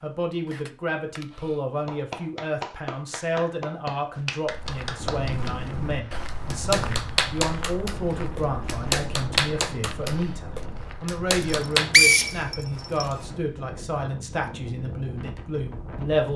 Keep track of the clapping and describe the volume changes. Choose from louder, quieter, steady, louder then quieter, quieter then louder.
louder.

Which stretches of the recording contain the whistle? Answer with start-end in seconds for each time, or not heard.
11.4-13.1.